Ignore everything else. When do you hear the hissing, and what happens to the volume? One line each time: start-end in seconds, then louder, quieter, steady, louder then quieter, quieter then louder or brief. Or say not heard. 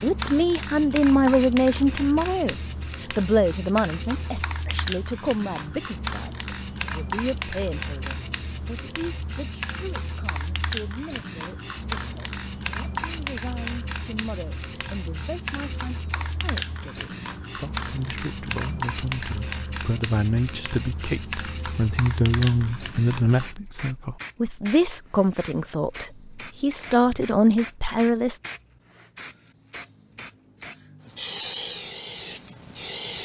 0.0-33.2 steady.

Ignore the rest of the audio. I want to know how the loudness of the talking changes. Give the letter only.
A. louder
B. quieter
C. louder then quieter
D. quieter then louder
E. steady
D.